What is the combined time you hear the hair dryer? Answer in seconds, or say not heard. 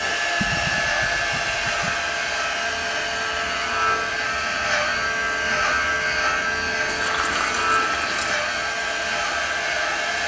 10 s.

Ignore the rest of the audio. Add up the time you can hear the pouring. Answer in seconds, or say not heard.
3 s.